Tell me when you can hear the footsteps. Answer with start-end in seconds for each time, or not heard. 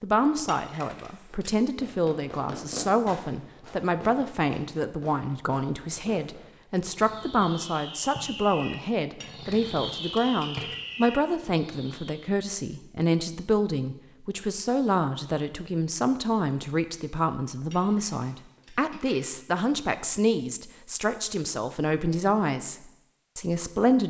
not heard.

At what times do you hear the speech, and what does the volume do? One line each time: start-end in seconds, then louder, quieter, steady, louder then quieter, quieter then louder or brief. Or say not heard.
0.0-24.0 steady.